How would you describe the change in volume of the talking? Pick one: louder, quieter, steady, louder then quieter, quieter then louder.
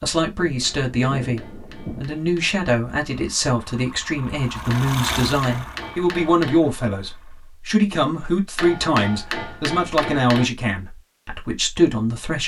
steady.